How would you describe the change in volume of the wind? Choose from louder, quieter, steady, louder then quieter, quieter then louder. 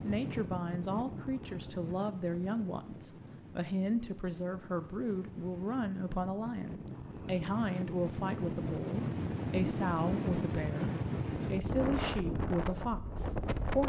quieter then louder.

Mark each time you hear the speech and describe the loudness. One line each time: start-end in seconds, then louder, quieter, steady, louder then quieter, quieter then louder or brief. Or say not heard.
0.0-13.8 steady.